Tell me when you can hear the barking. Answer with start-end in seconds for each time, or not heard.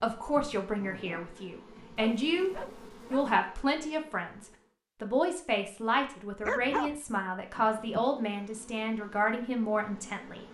1.9-3.4, 6.4-7.0.